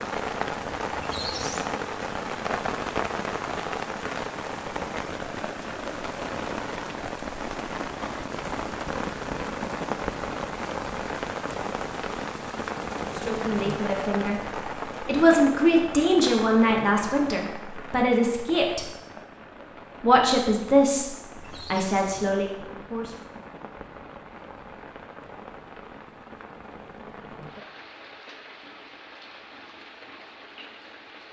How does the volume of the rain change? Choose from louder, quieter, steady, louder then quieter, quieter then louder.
quieter.